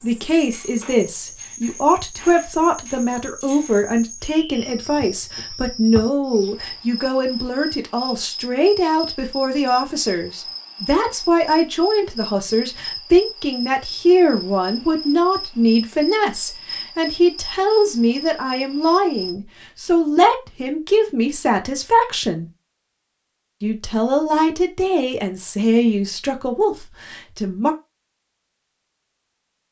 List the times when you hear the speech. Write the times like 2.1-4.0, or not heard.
0.0-22.5, 23.6-27.8.